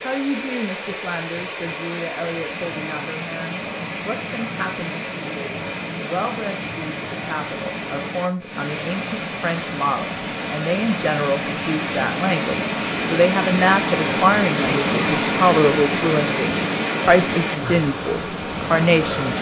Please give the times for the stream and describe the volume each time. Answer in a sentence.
You can hear the stream from 0.0 to 19.3 s, getting louder.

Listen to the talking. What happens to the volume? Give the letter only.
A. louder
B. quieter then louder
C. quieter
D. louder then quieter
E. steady
A.